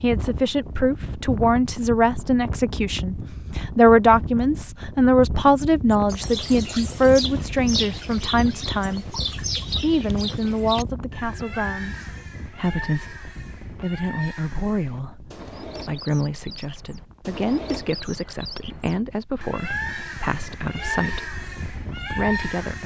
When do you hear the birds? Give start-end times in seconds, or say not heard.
5.9-22.8.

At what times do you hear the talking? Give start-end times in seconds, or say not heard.
0.0-9.2, 9.8-13.2, 13.8-21.3, 22.1-22.8.